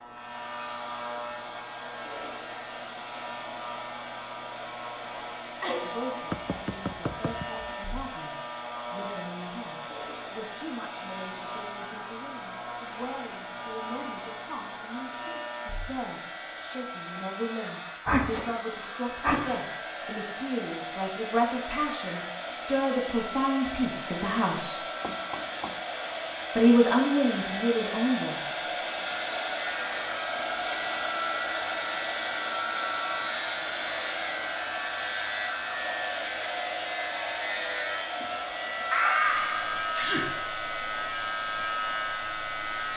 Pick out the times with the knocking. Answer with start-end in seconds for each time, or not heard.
6.3-7.8, 25.0-25.9.